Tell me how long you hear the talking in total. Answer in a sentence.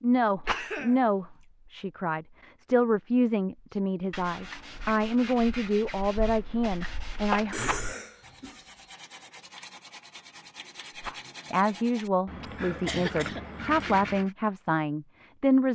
You can hear the talking for 12 seconds altogether.